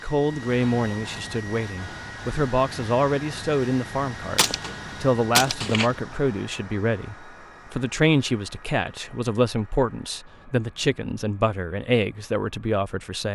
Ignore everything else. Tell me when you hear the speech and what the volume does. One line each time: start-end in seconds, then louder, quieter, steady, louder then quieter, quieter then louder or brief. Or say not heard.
0.0-13.3 steady.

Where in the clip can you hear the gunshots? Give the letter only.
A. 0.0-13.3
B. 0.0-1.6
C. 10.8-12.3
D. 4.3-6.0
D.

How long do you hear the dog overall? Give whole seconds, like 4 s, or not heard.
not heard.